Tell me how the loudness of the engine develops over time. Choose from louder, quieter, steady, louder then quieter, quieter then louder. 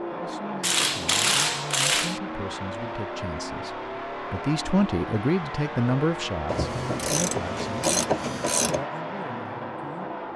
steady.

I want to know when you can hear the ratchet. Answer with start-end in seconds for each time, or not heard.
0.6-2.2, 6.5-8.8.